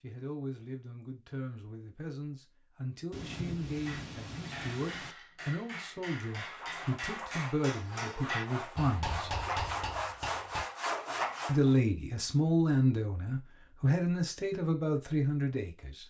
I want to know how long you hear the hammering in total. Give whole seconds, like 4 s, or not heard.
7 s.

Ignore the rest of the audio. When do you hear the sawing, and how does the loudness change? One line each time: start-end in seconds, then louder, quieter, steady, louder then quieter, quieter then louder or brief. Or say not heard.
6.2-11.8 louder.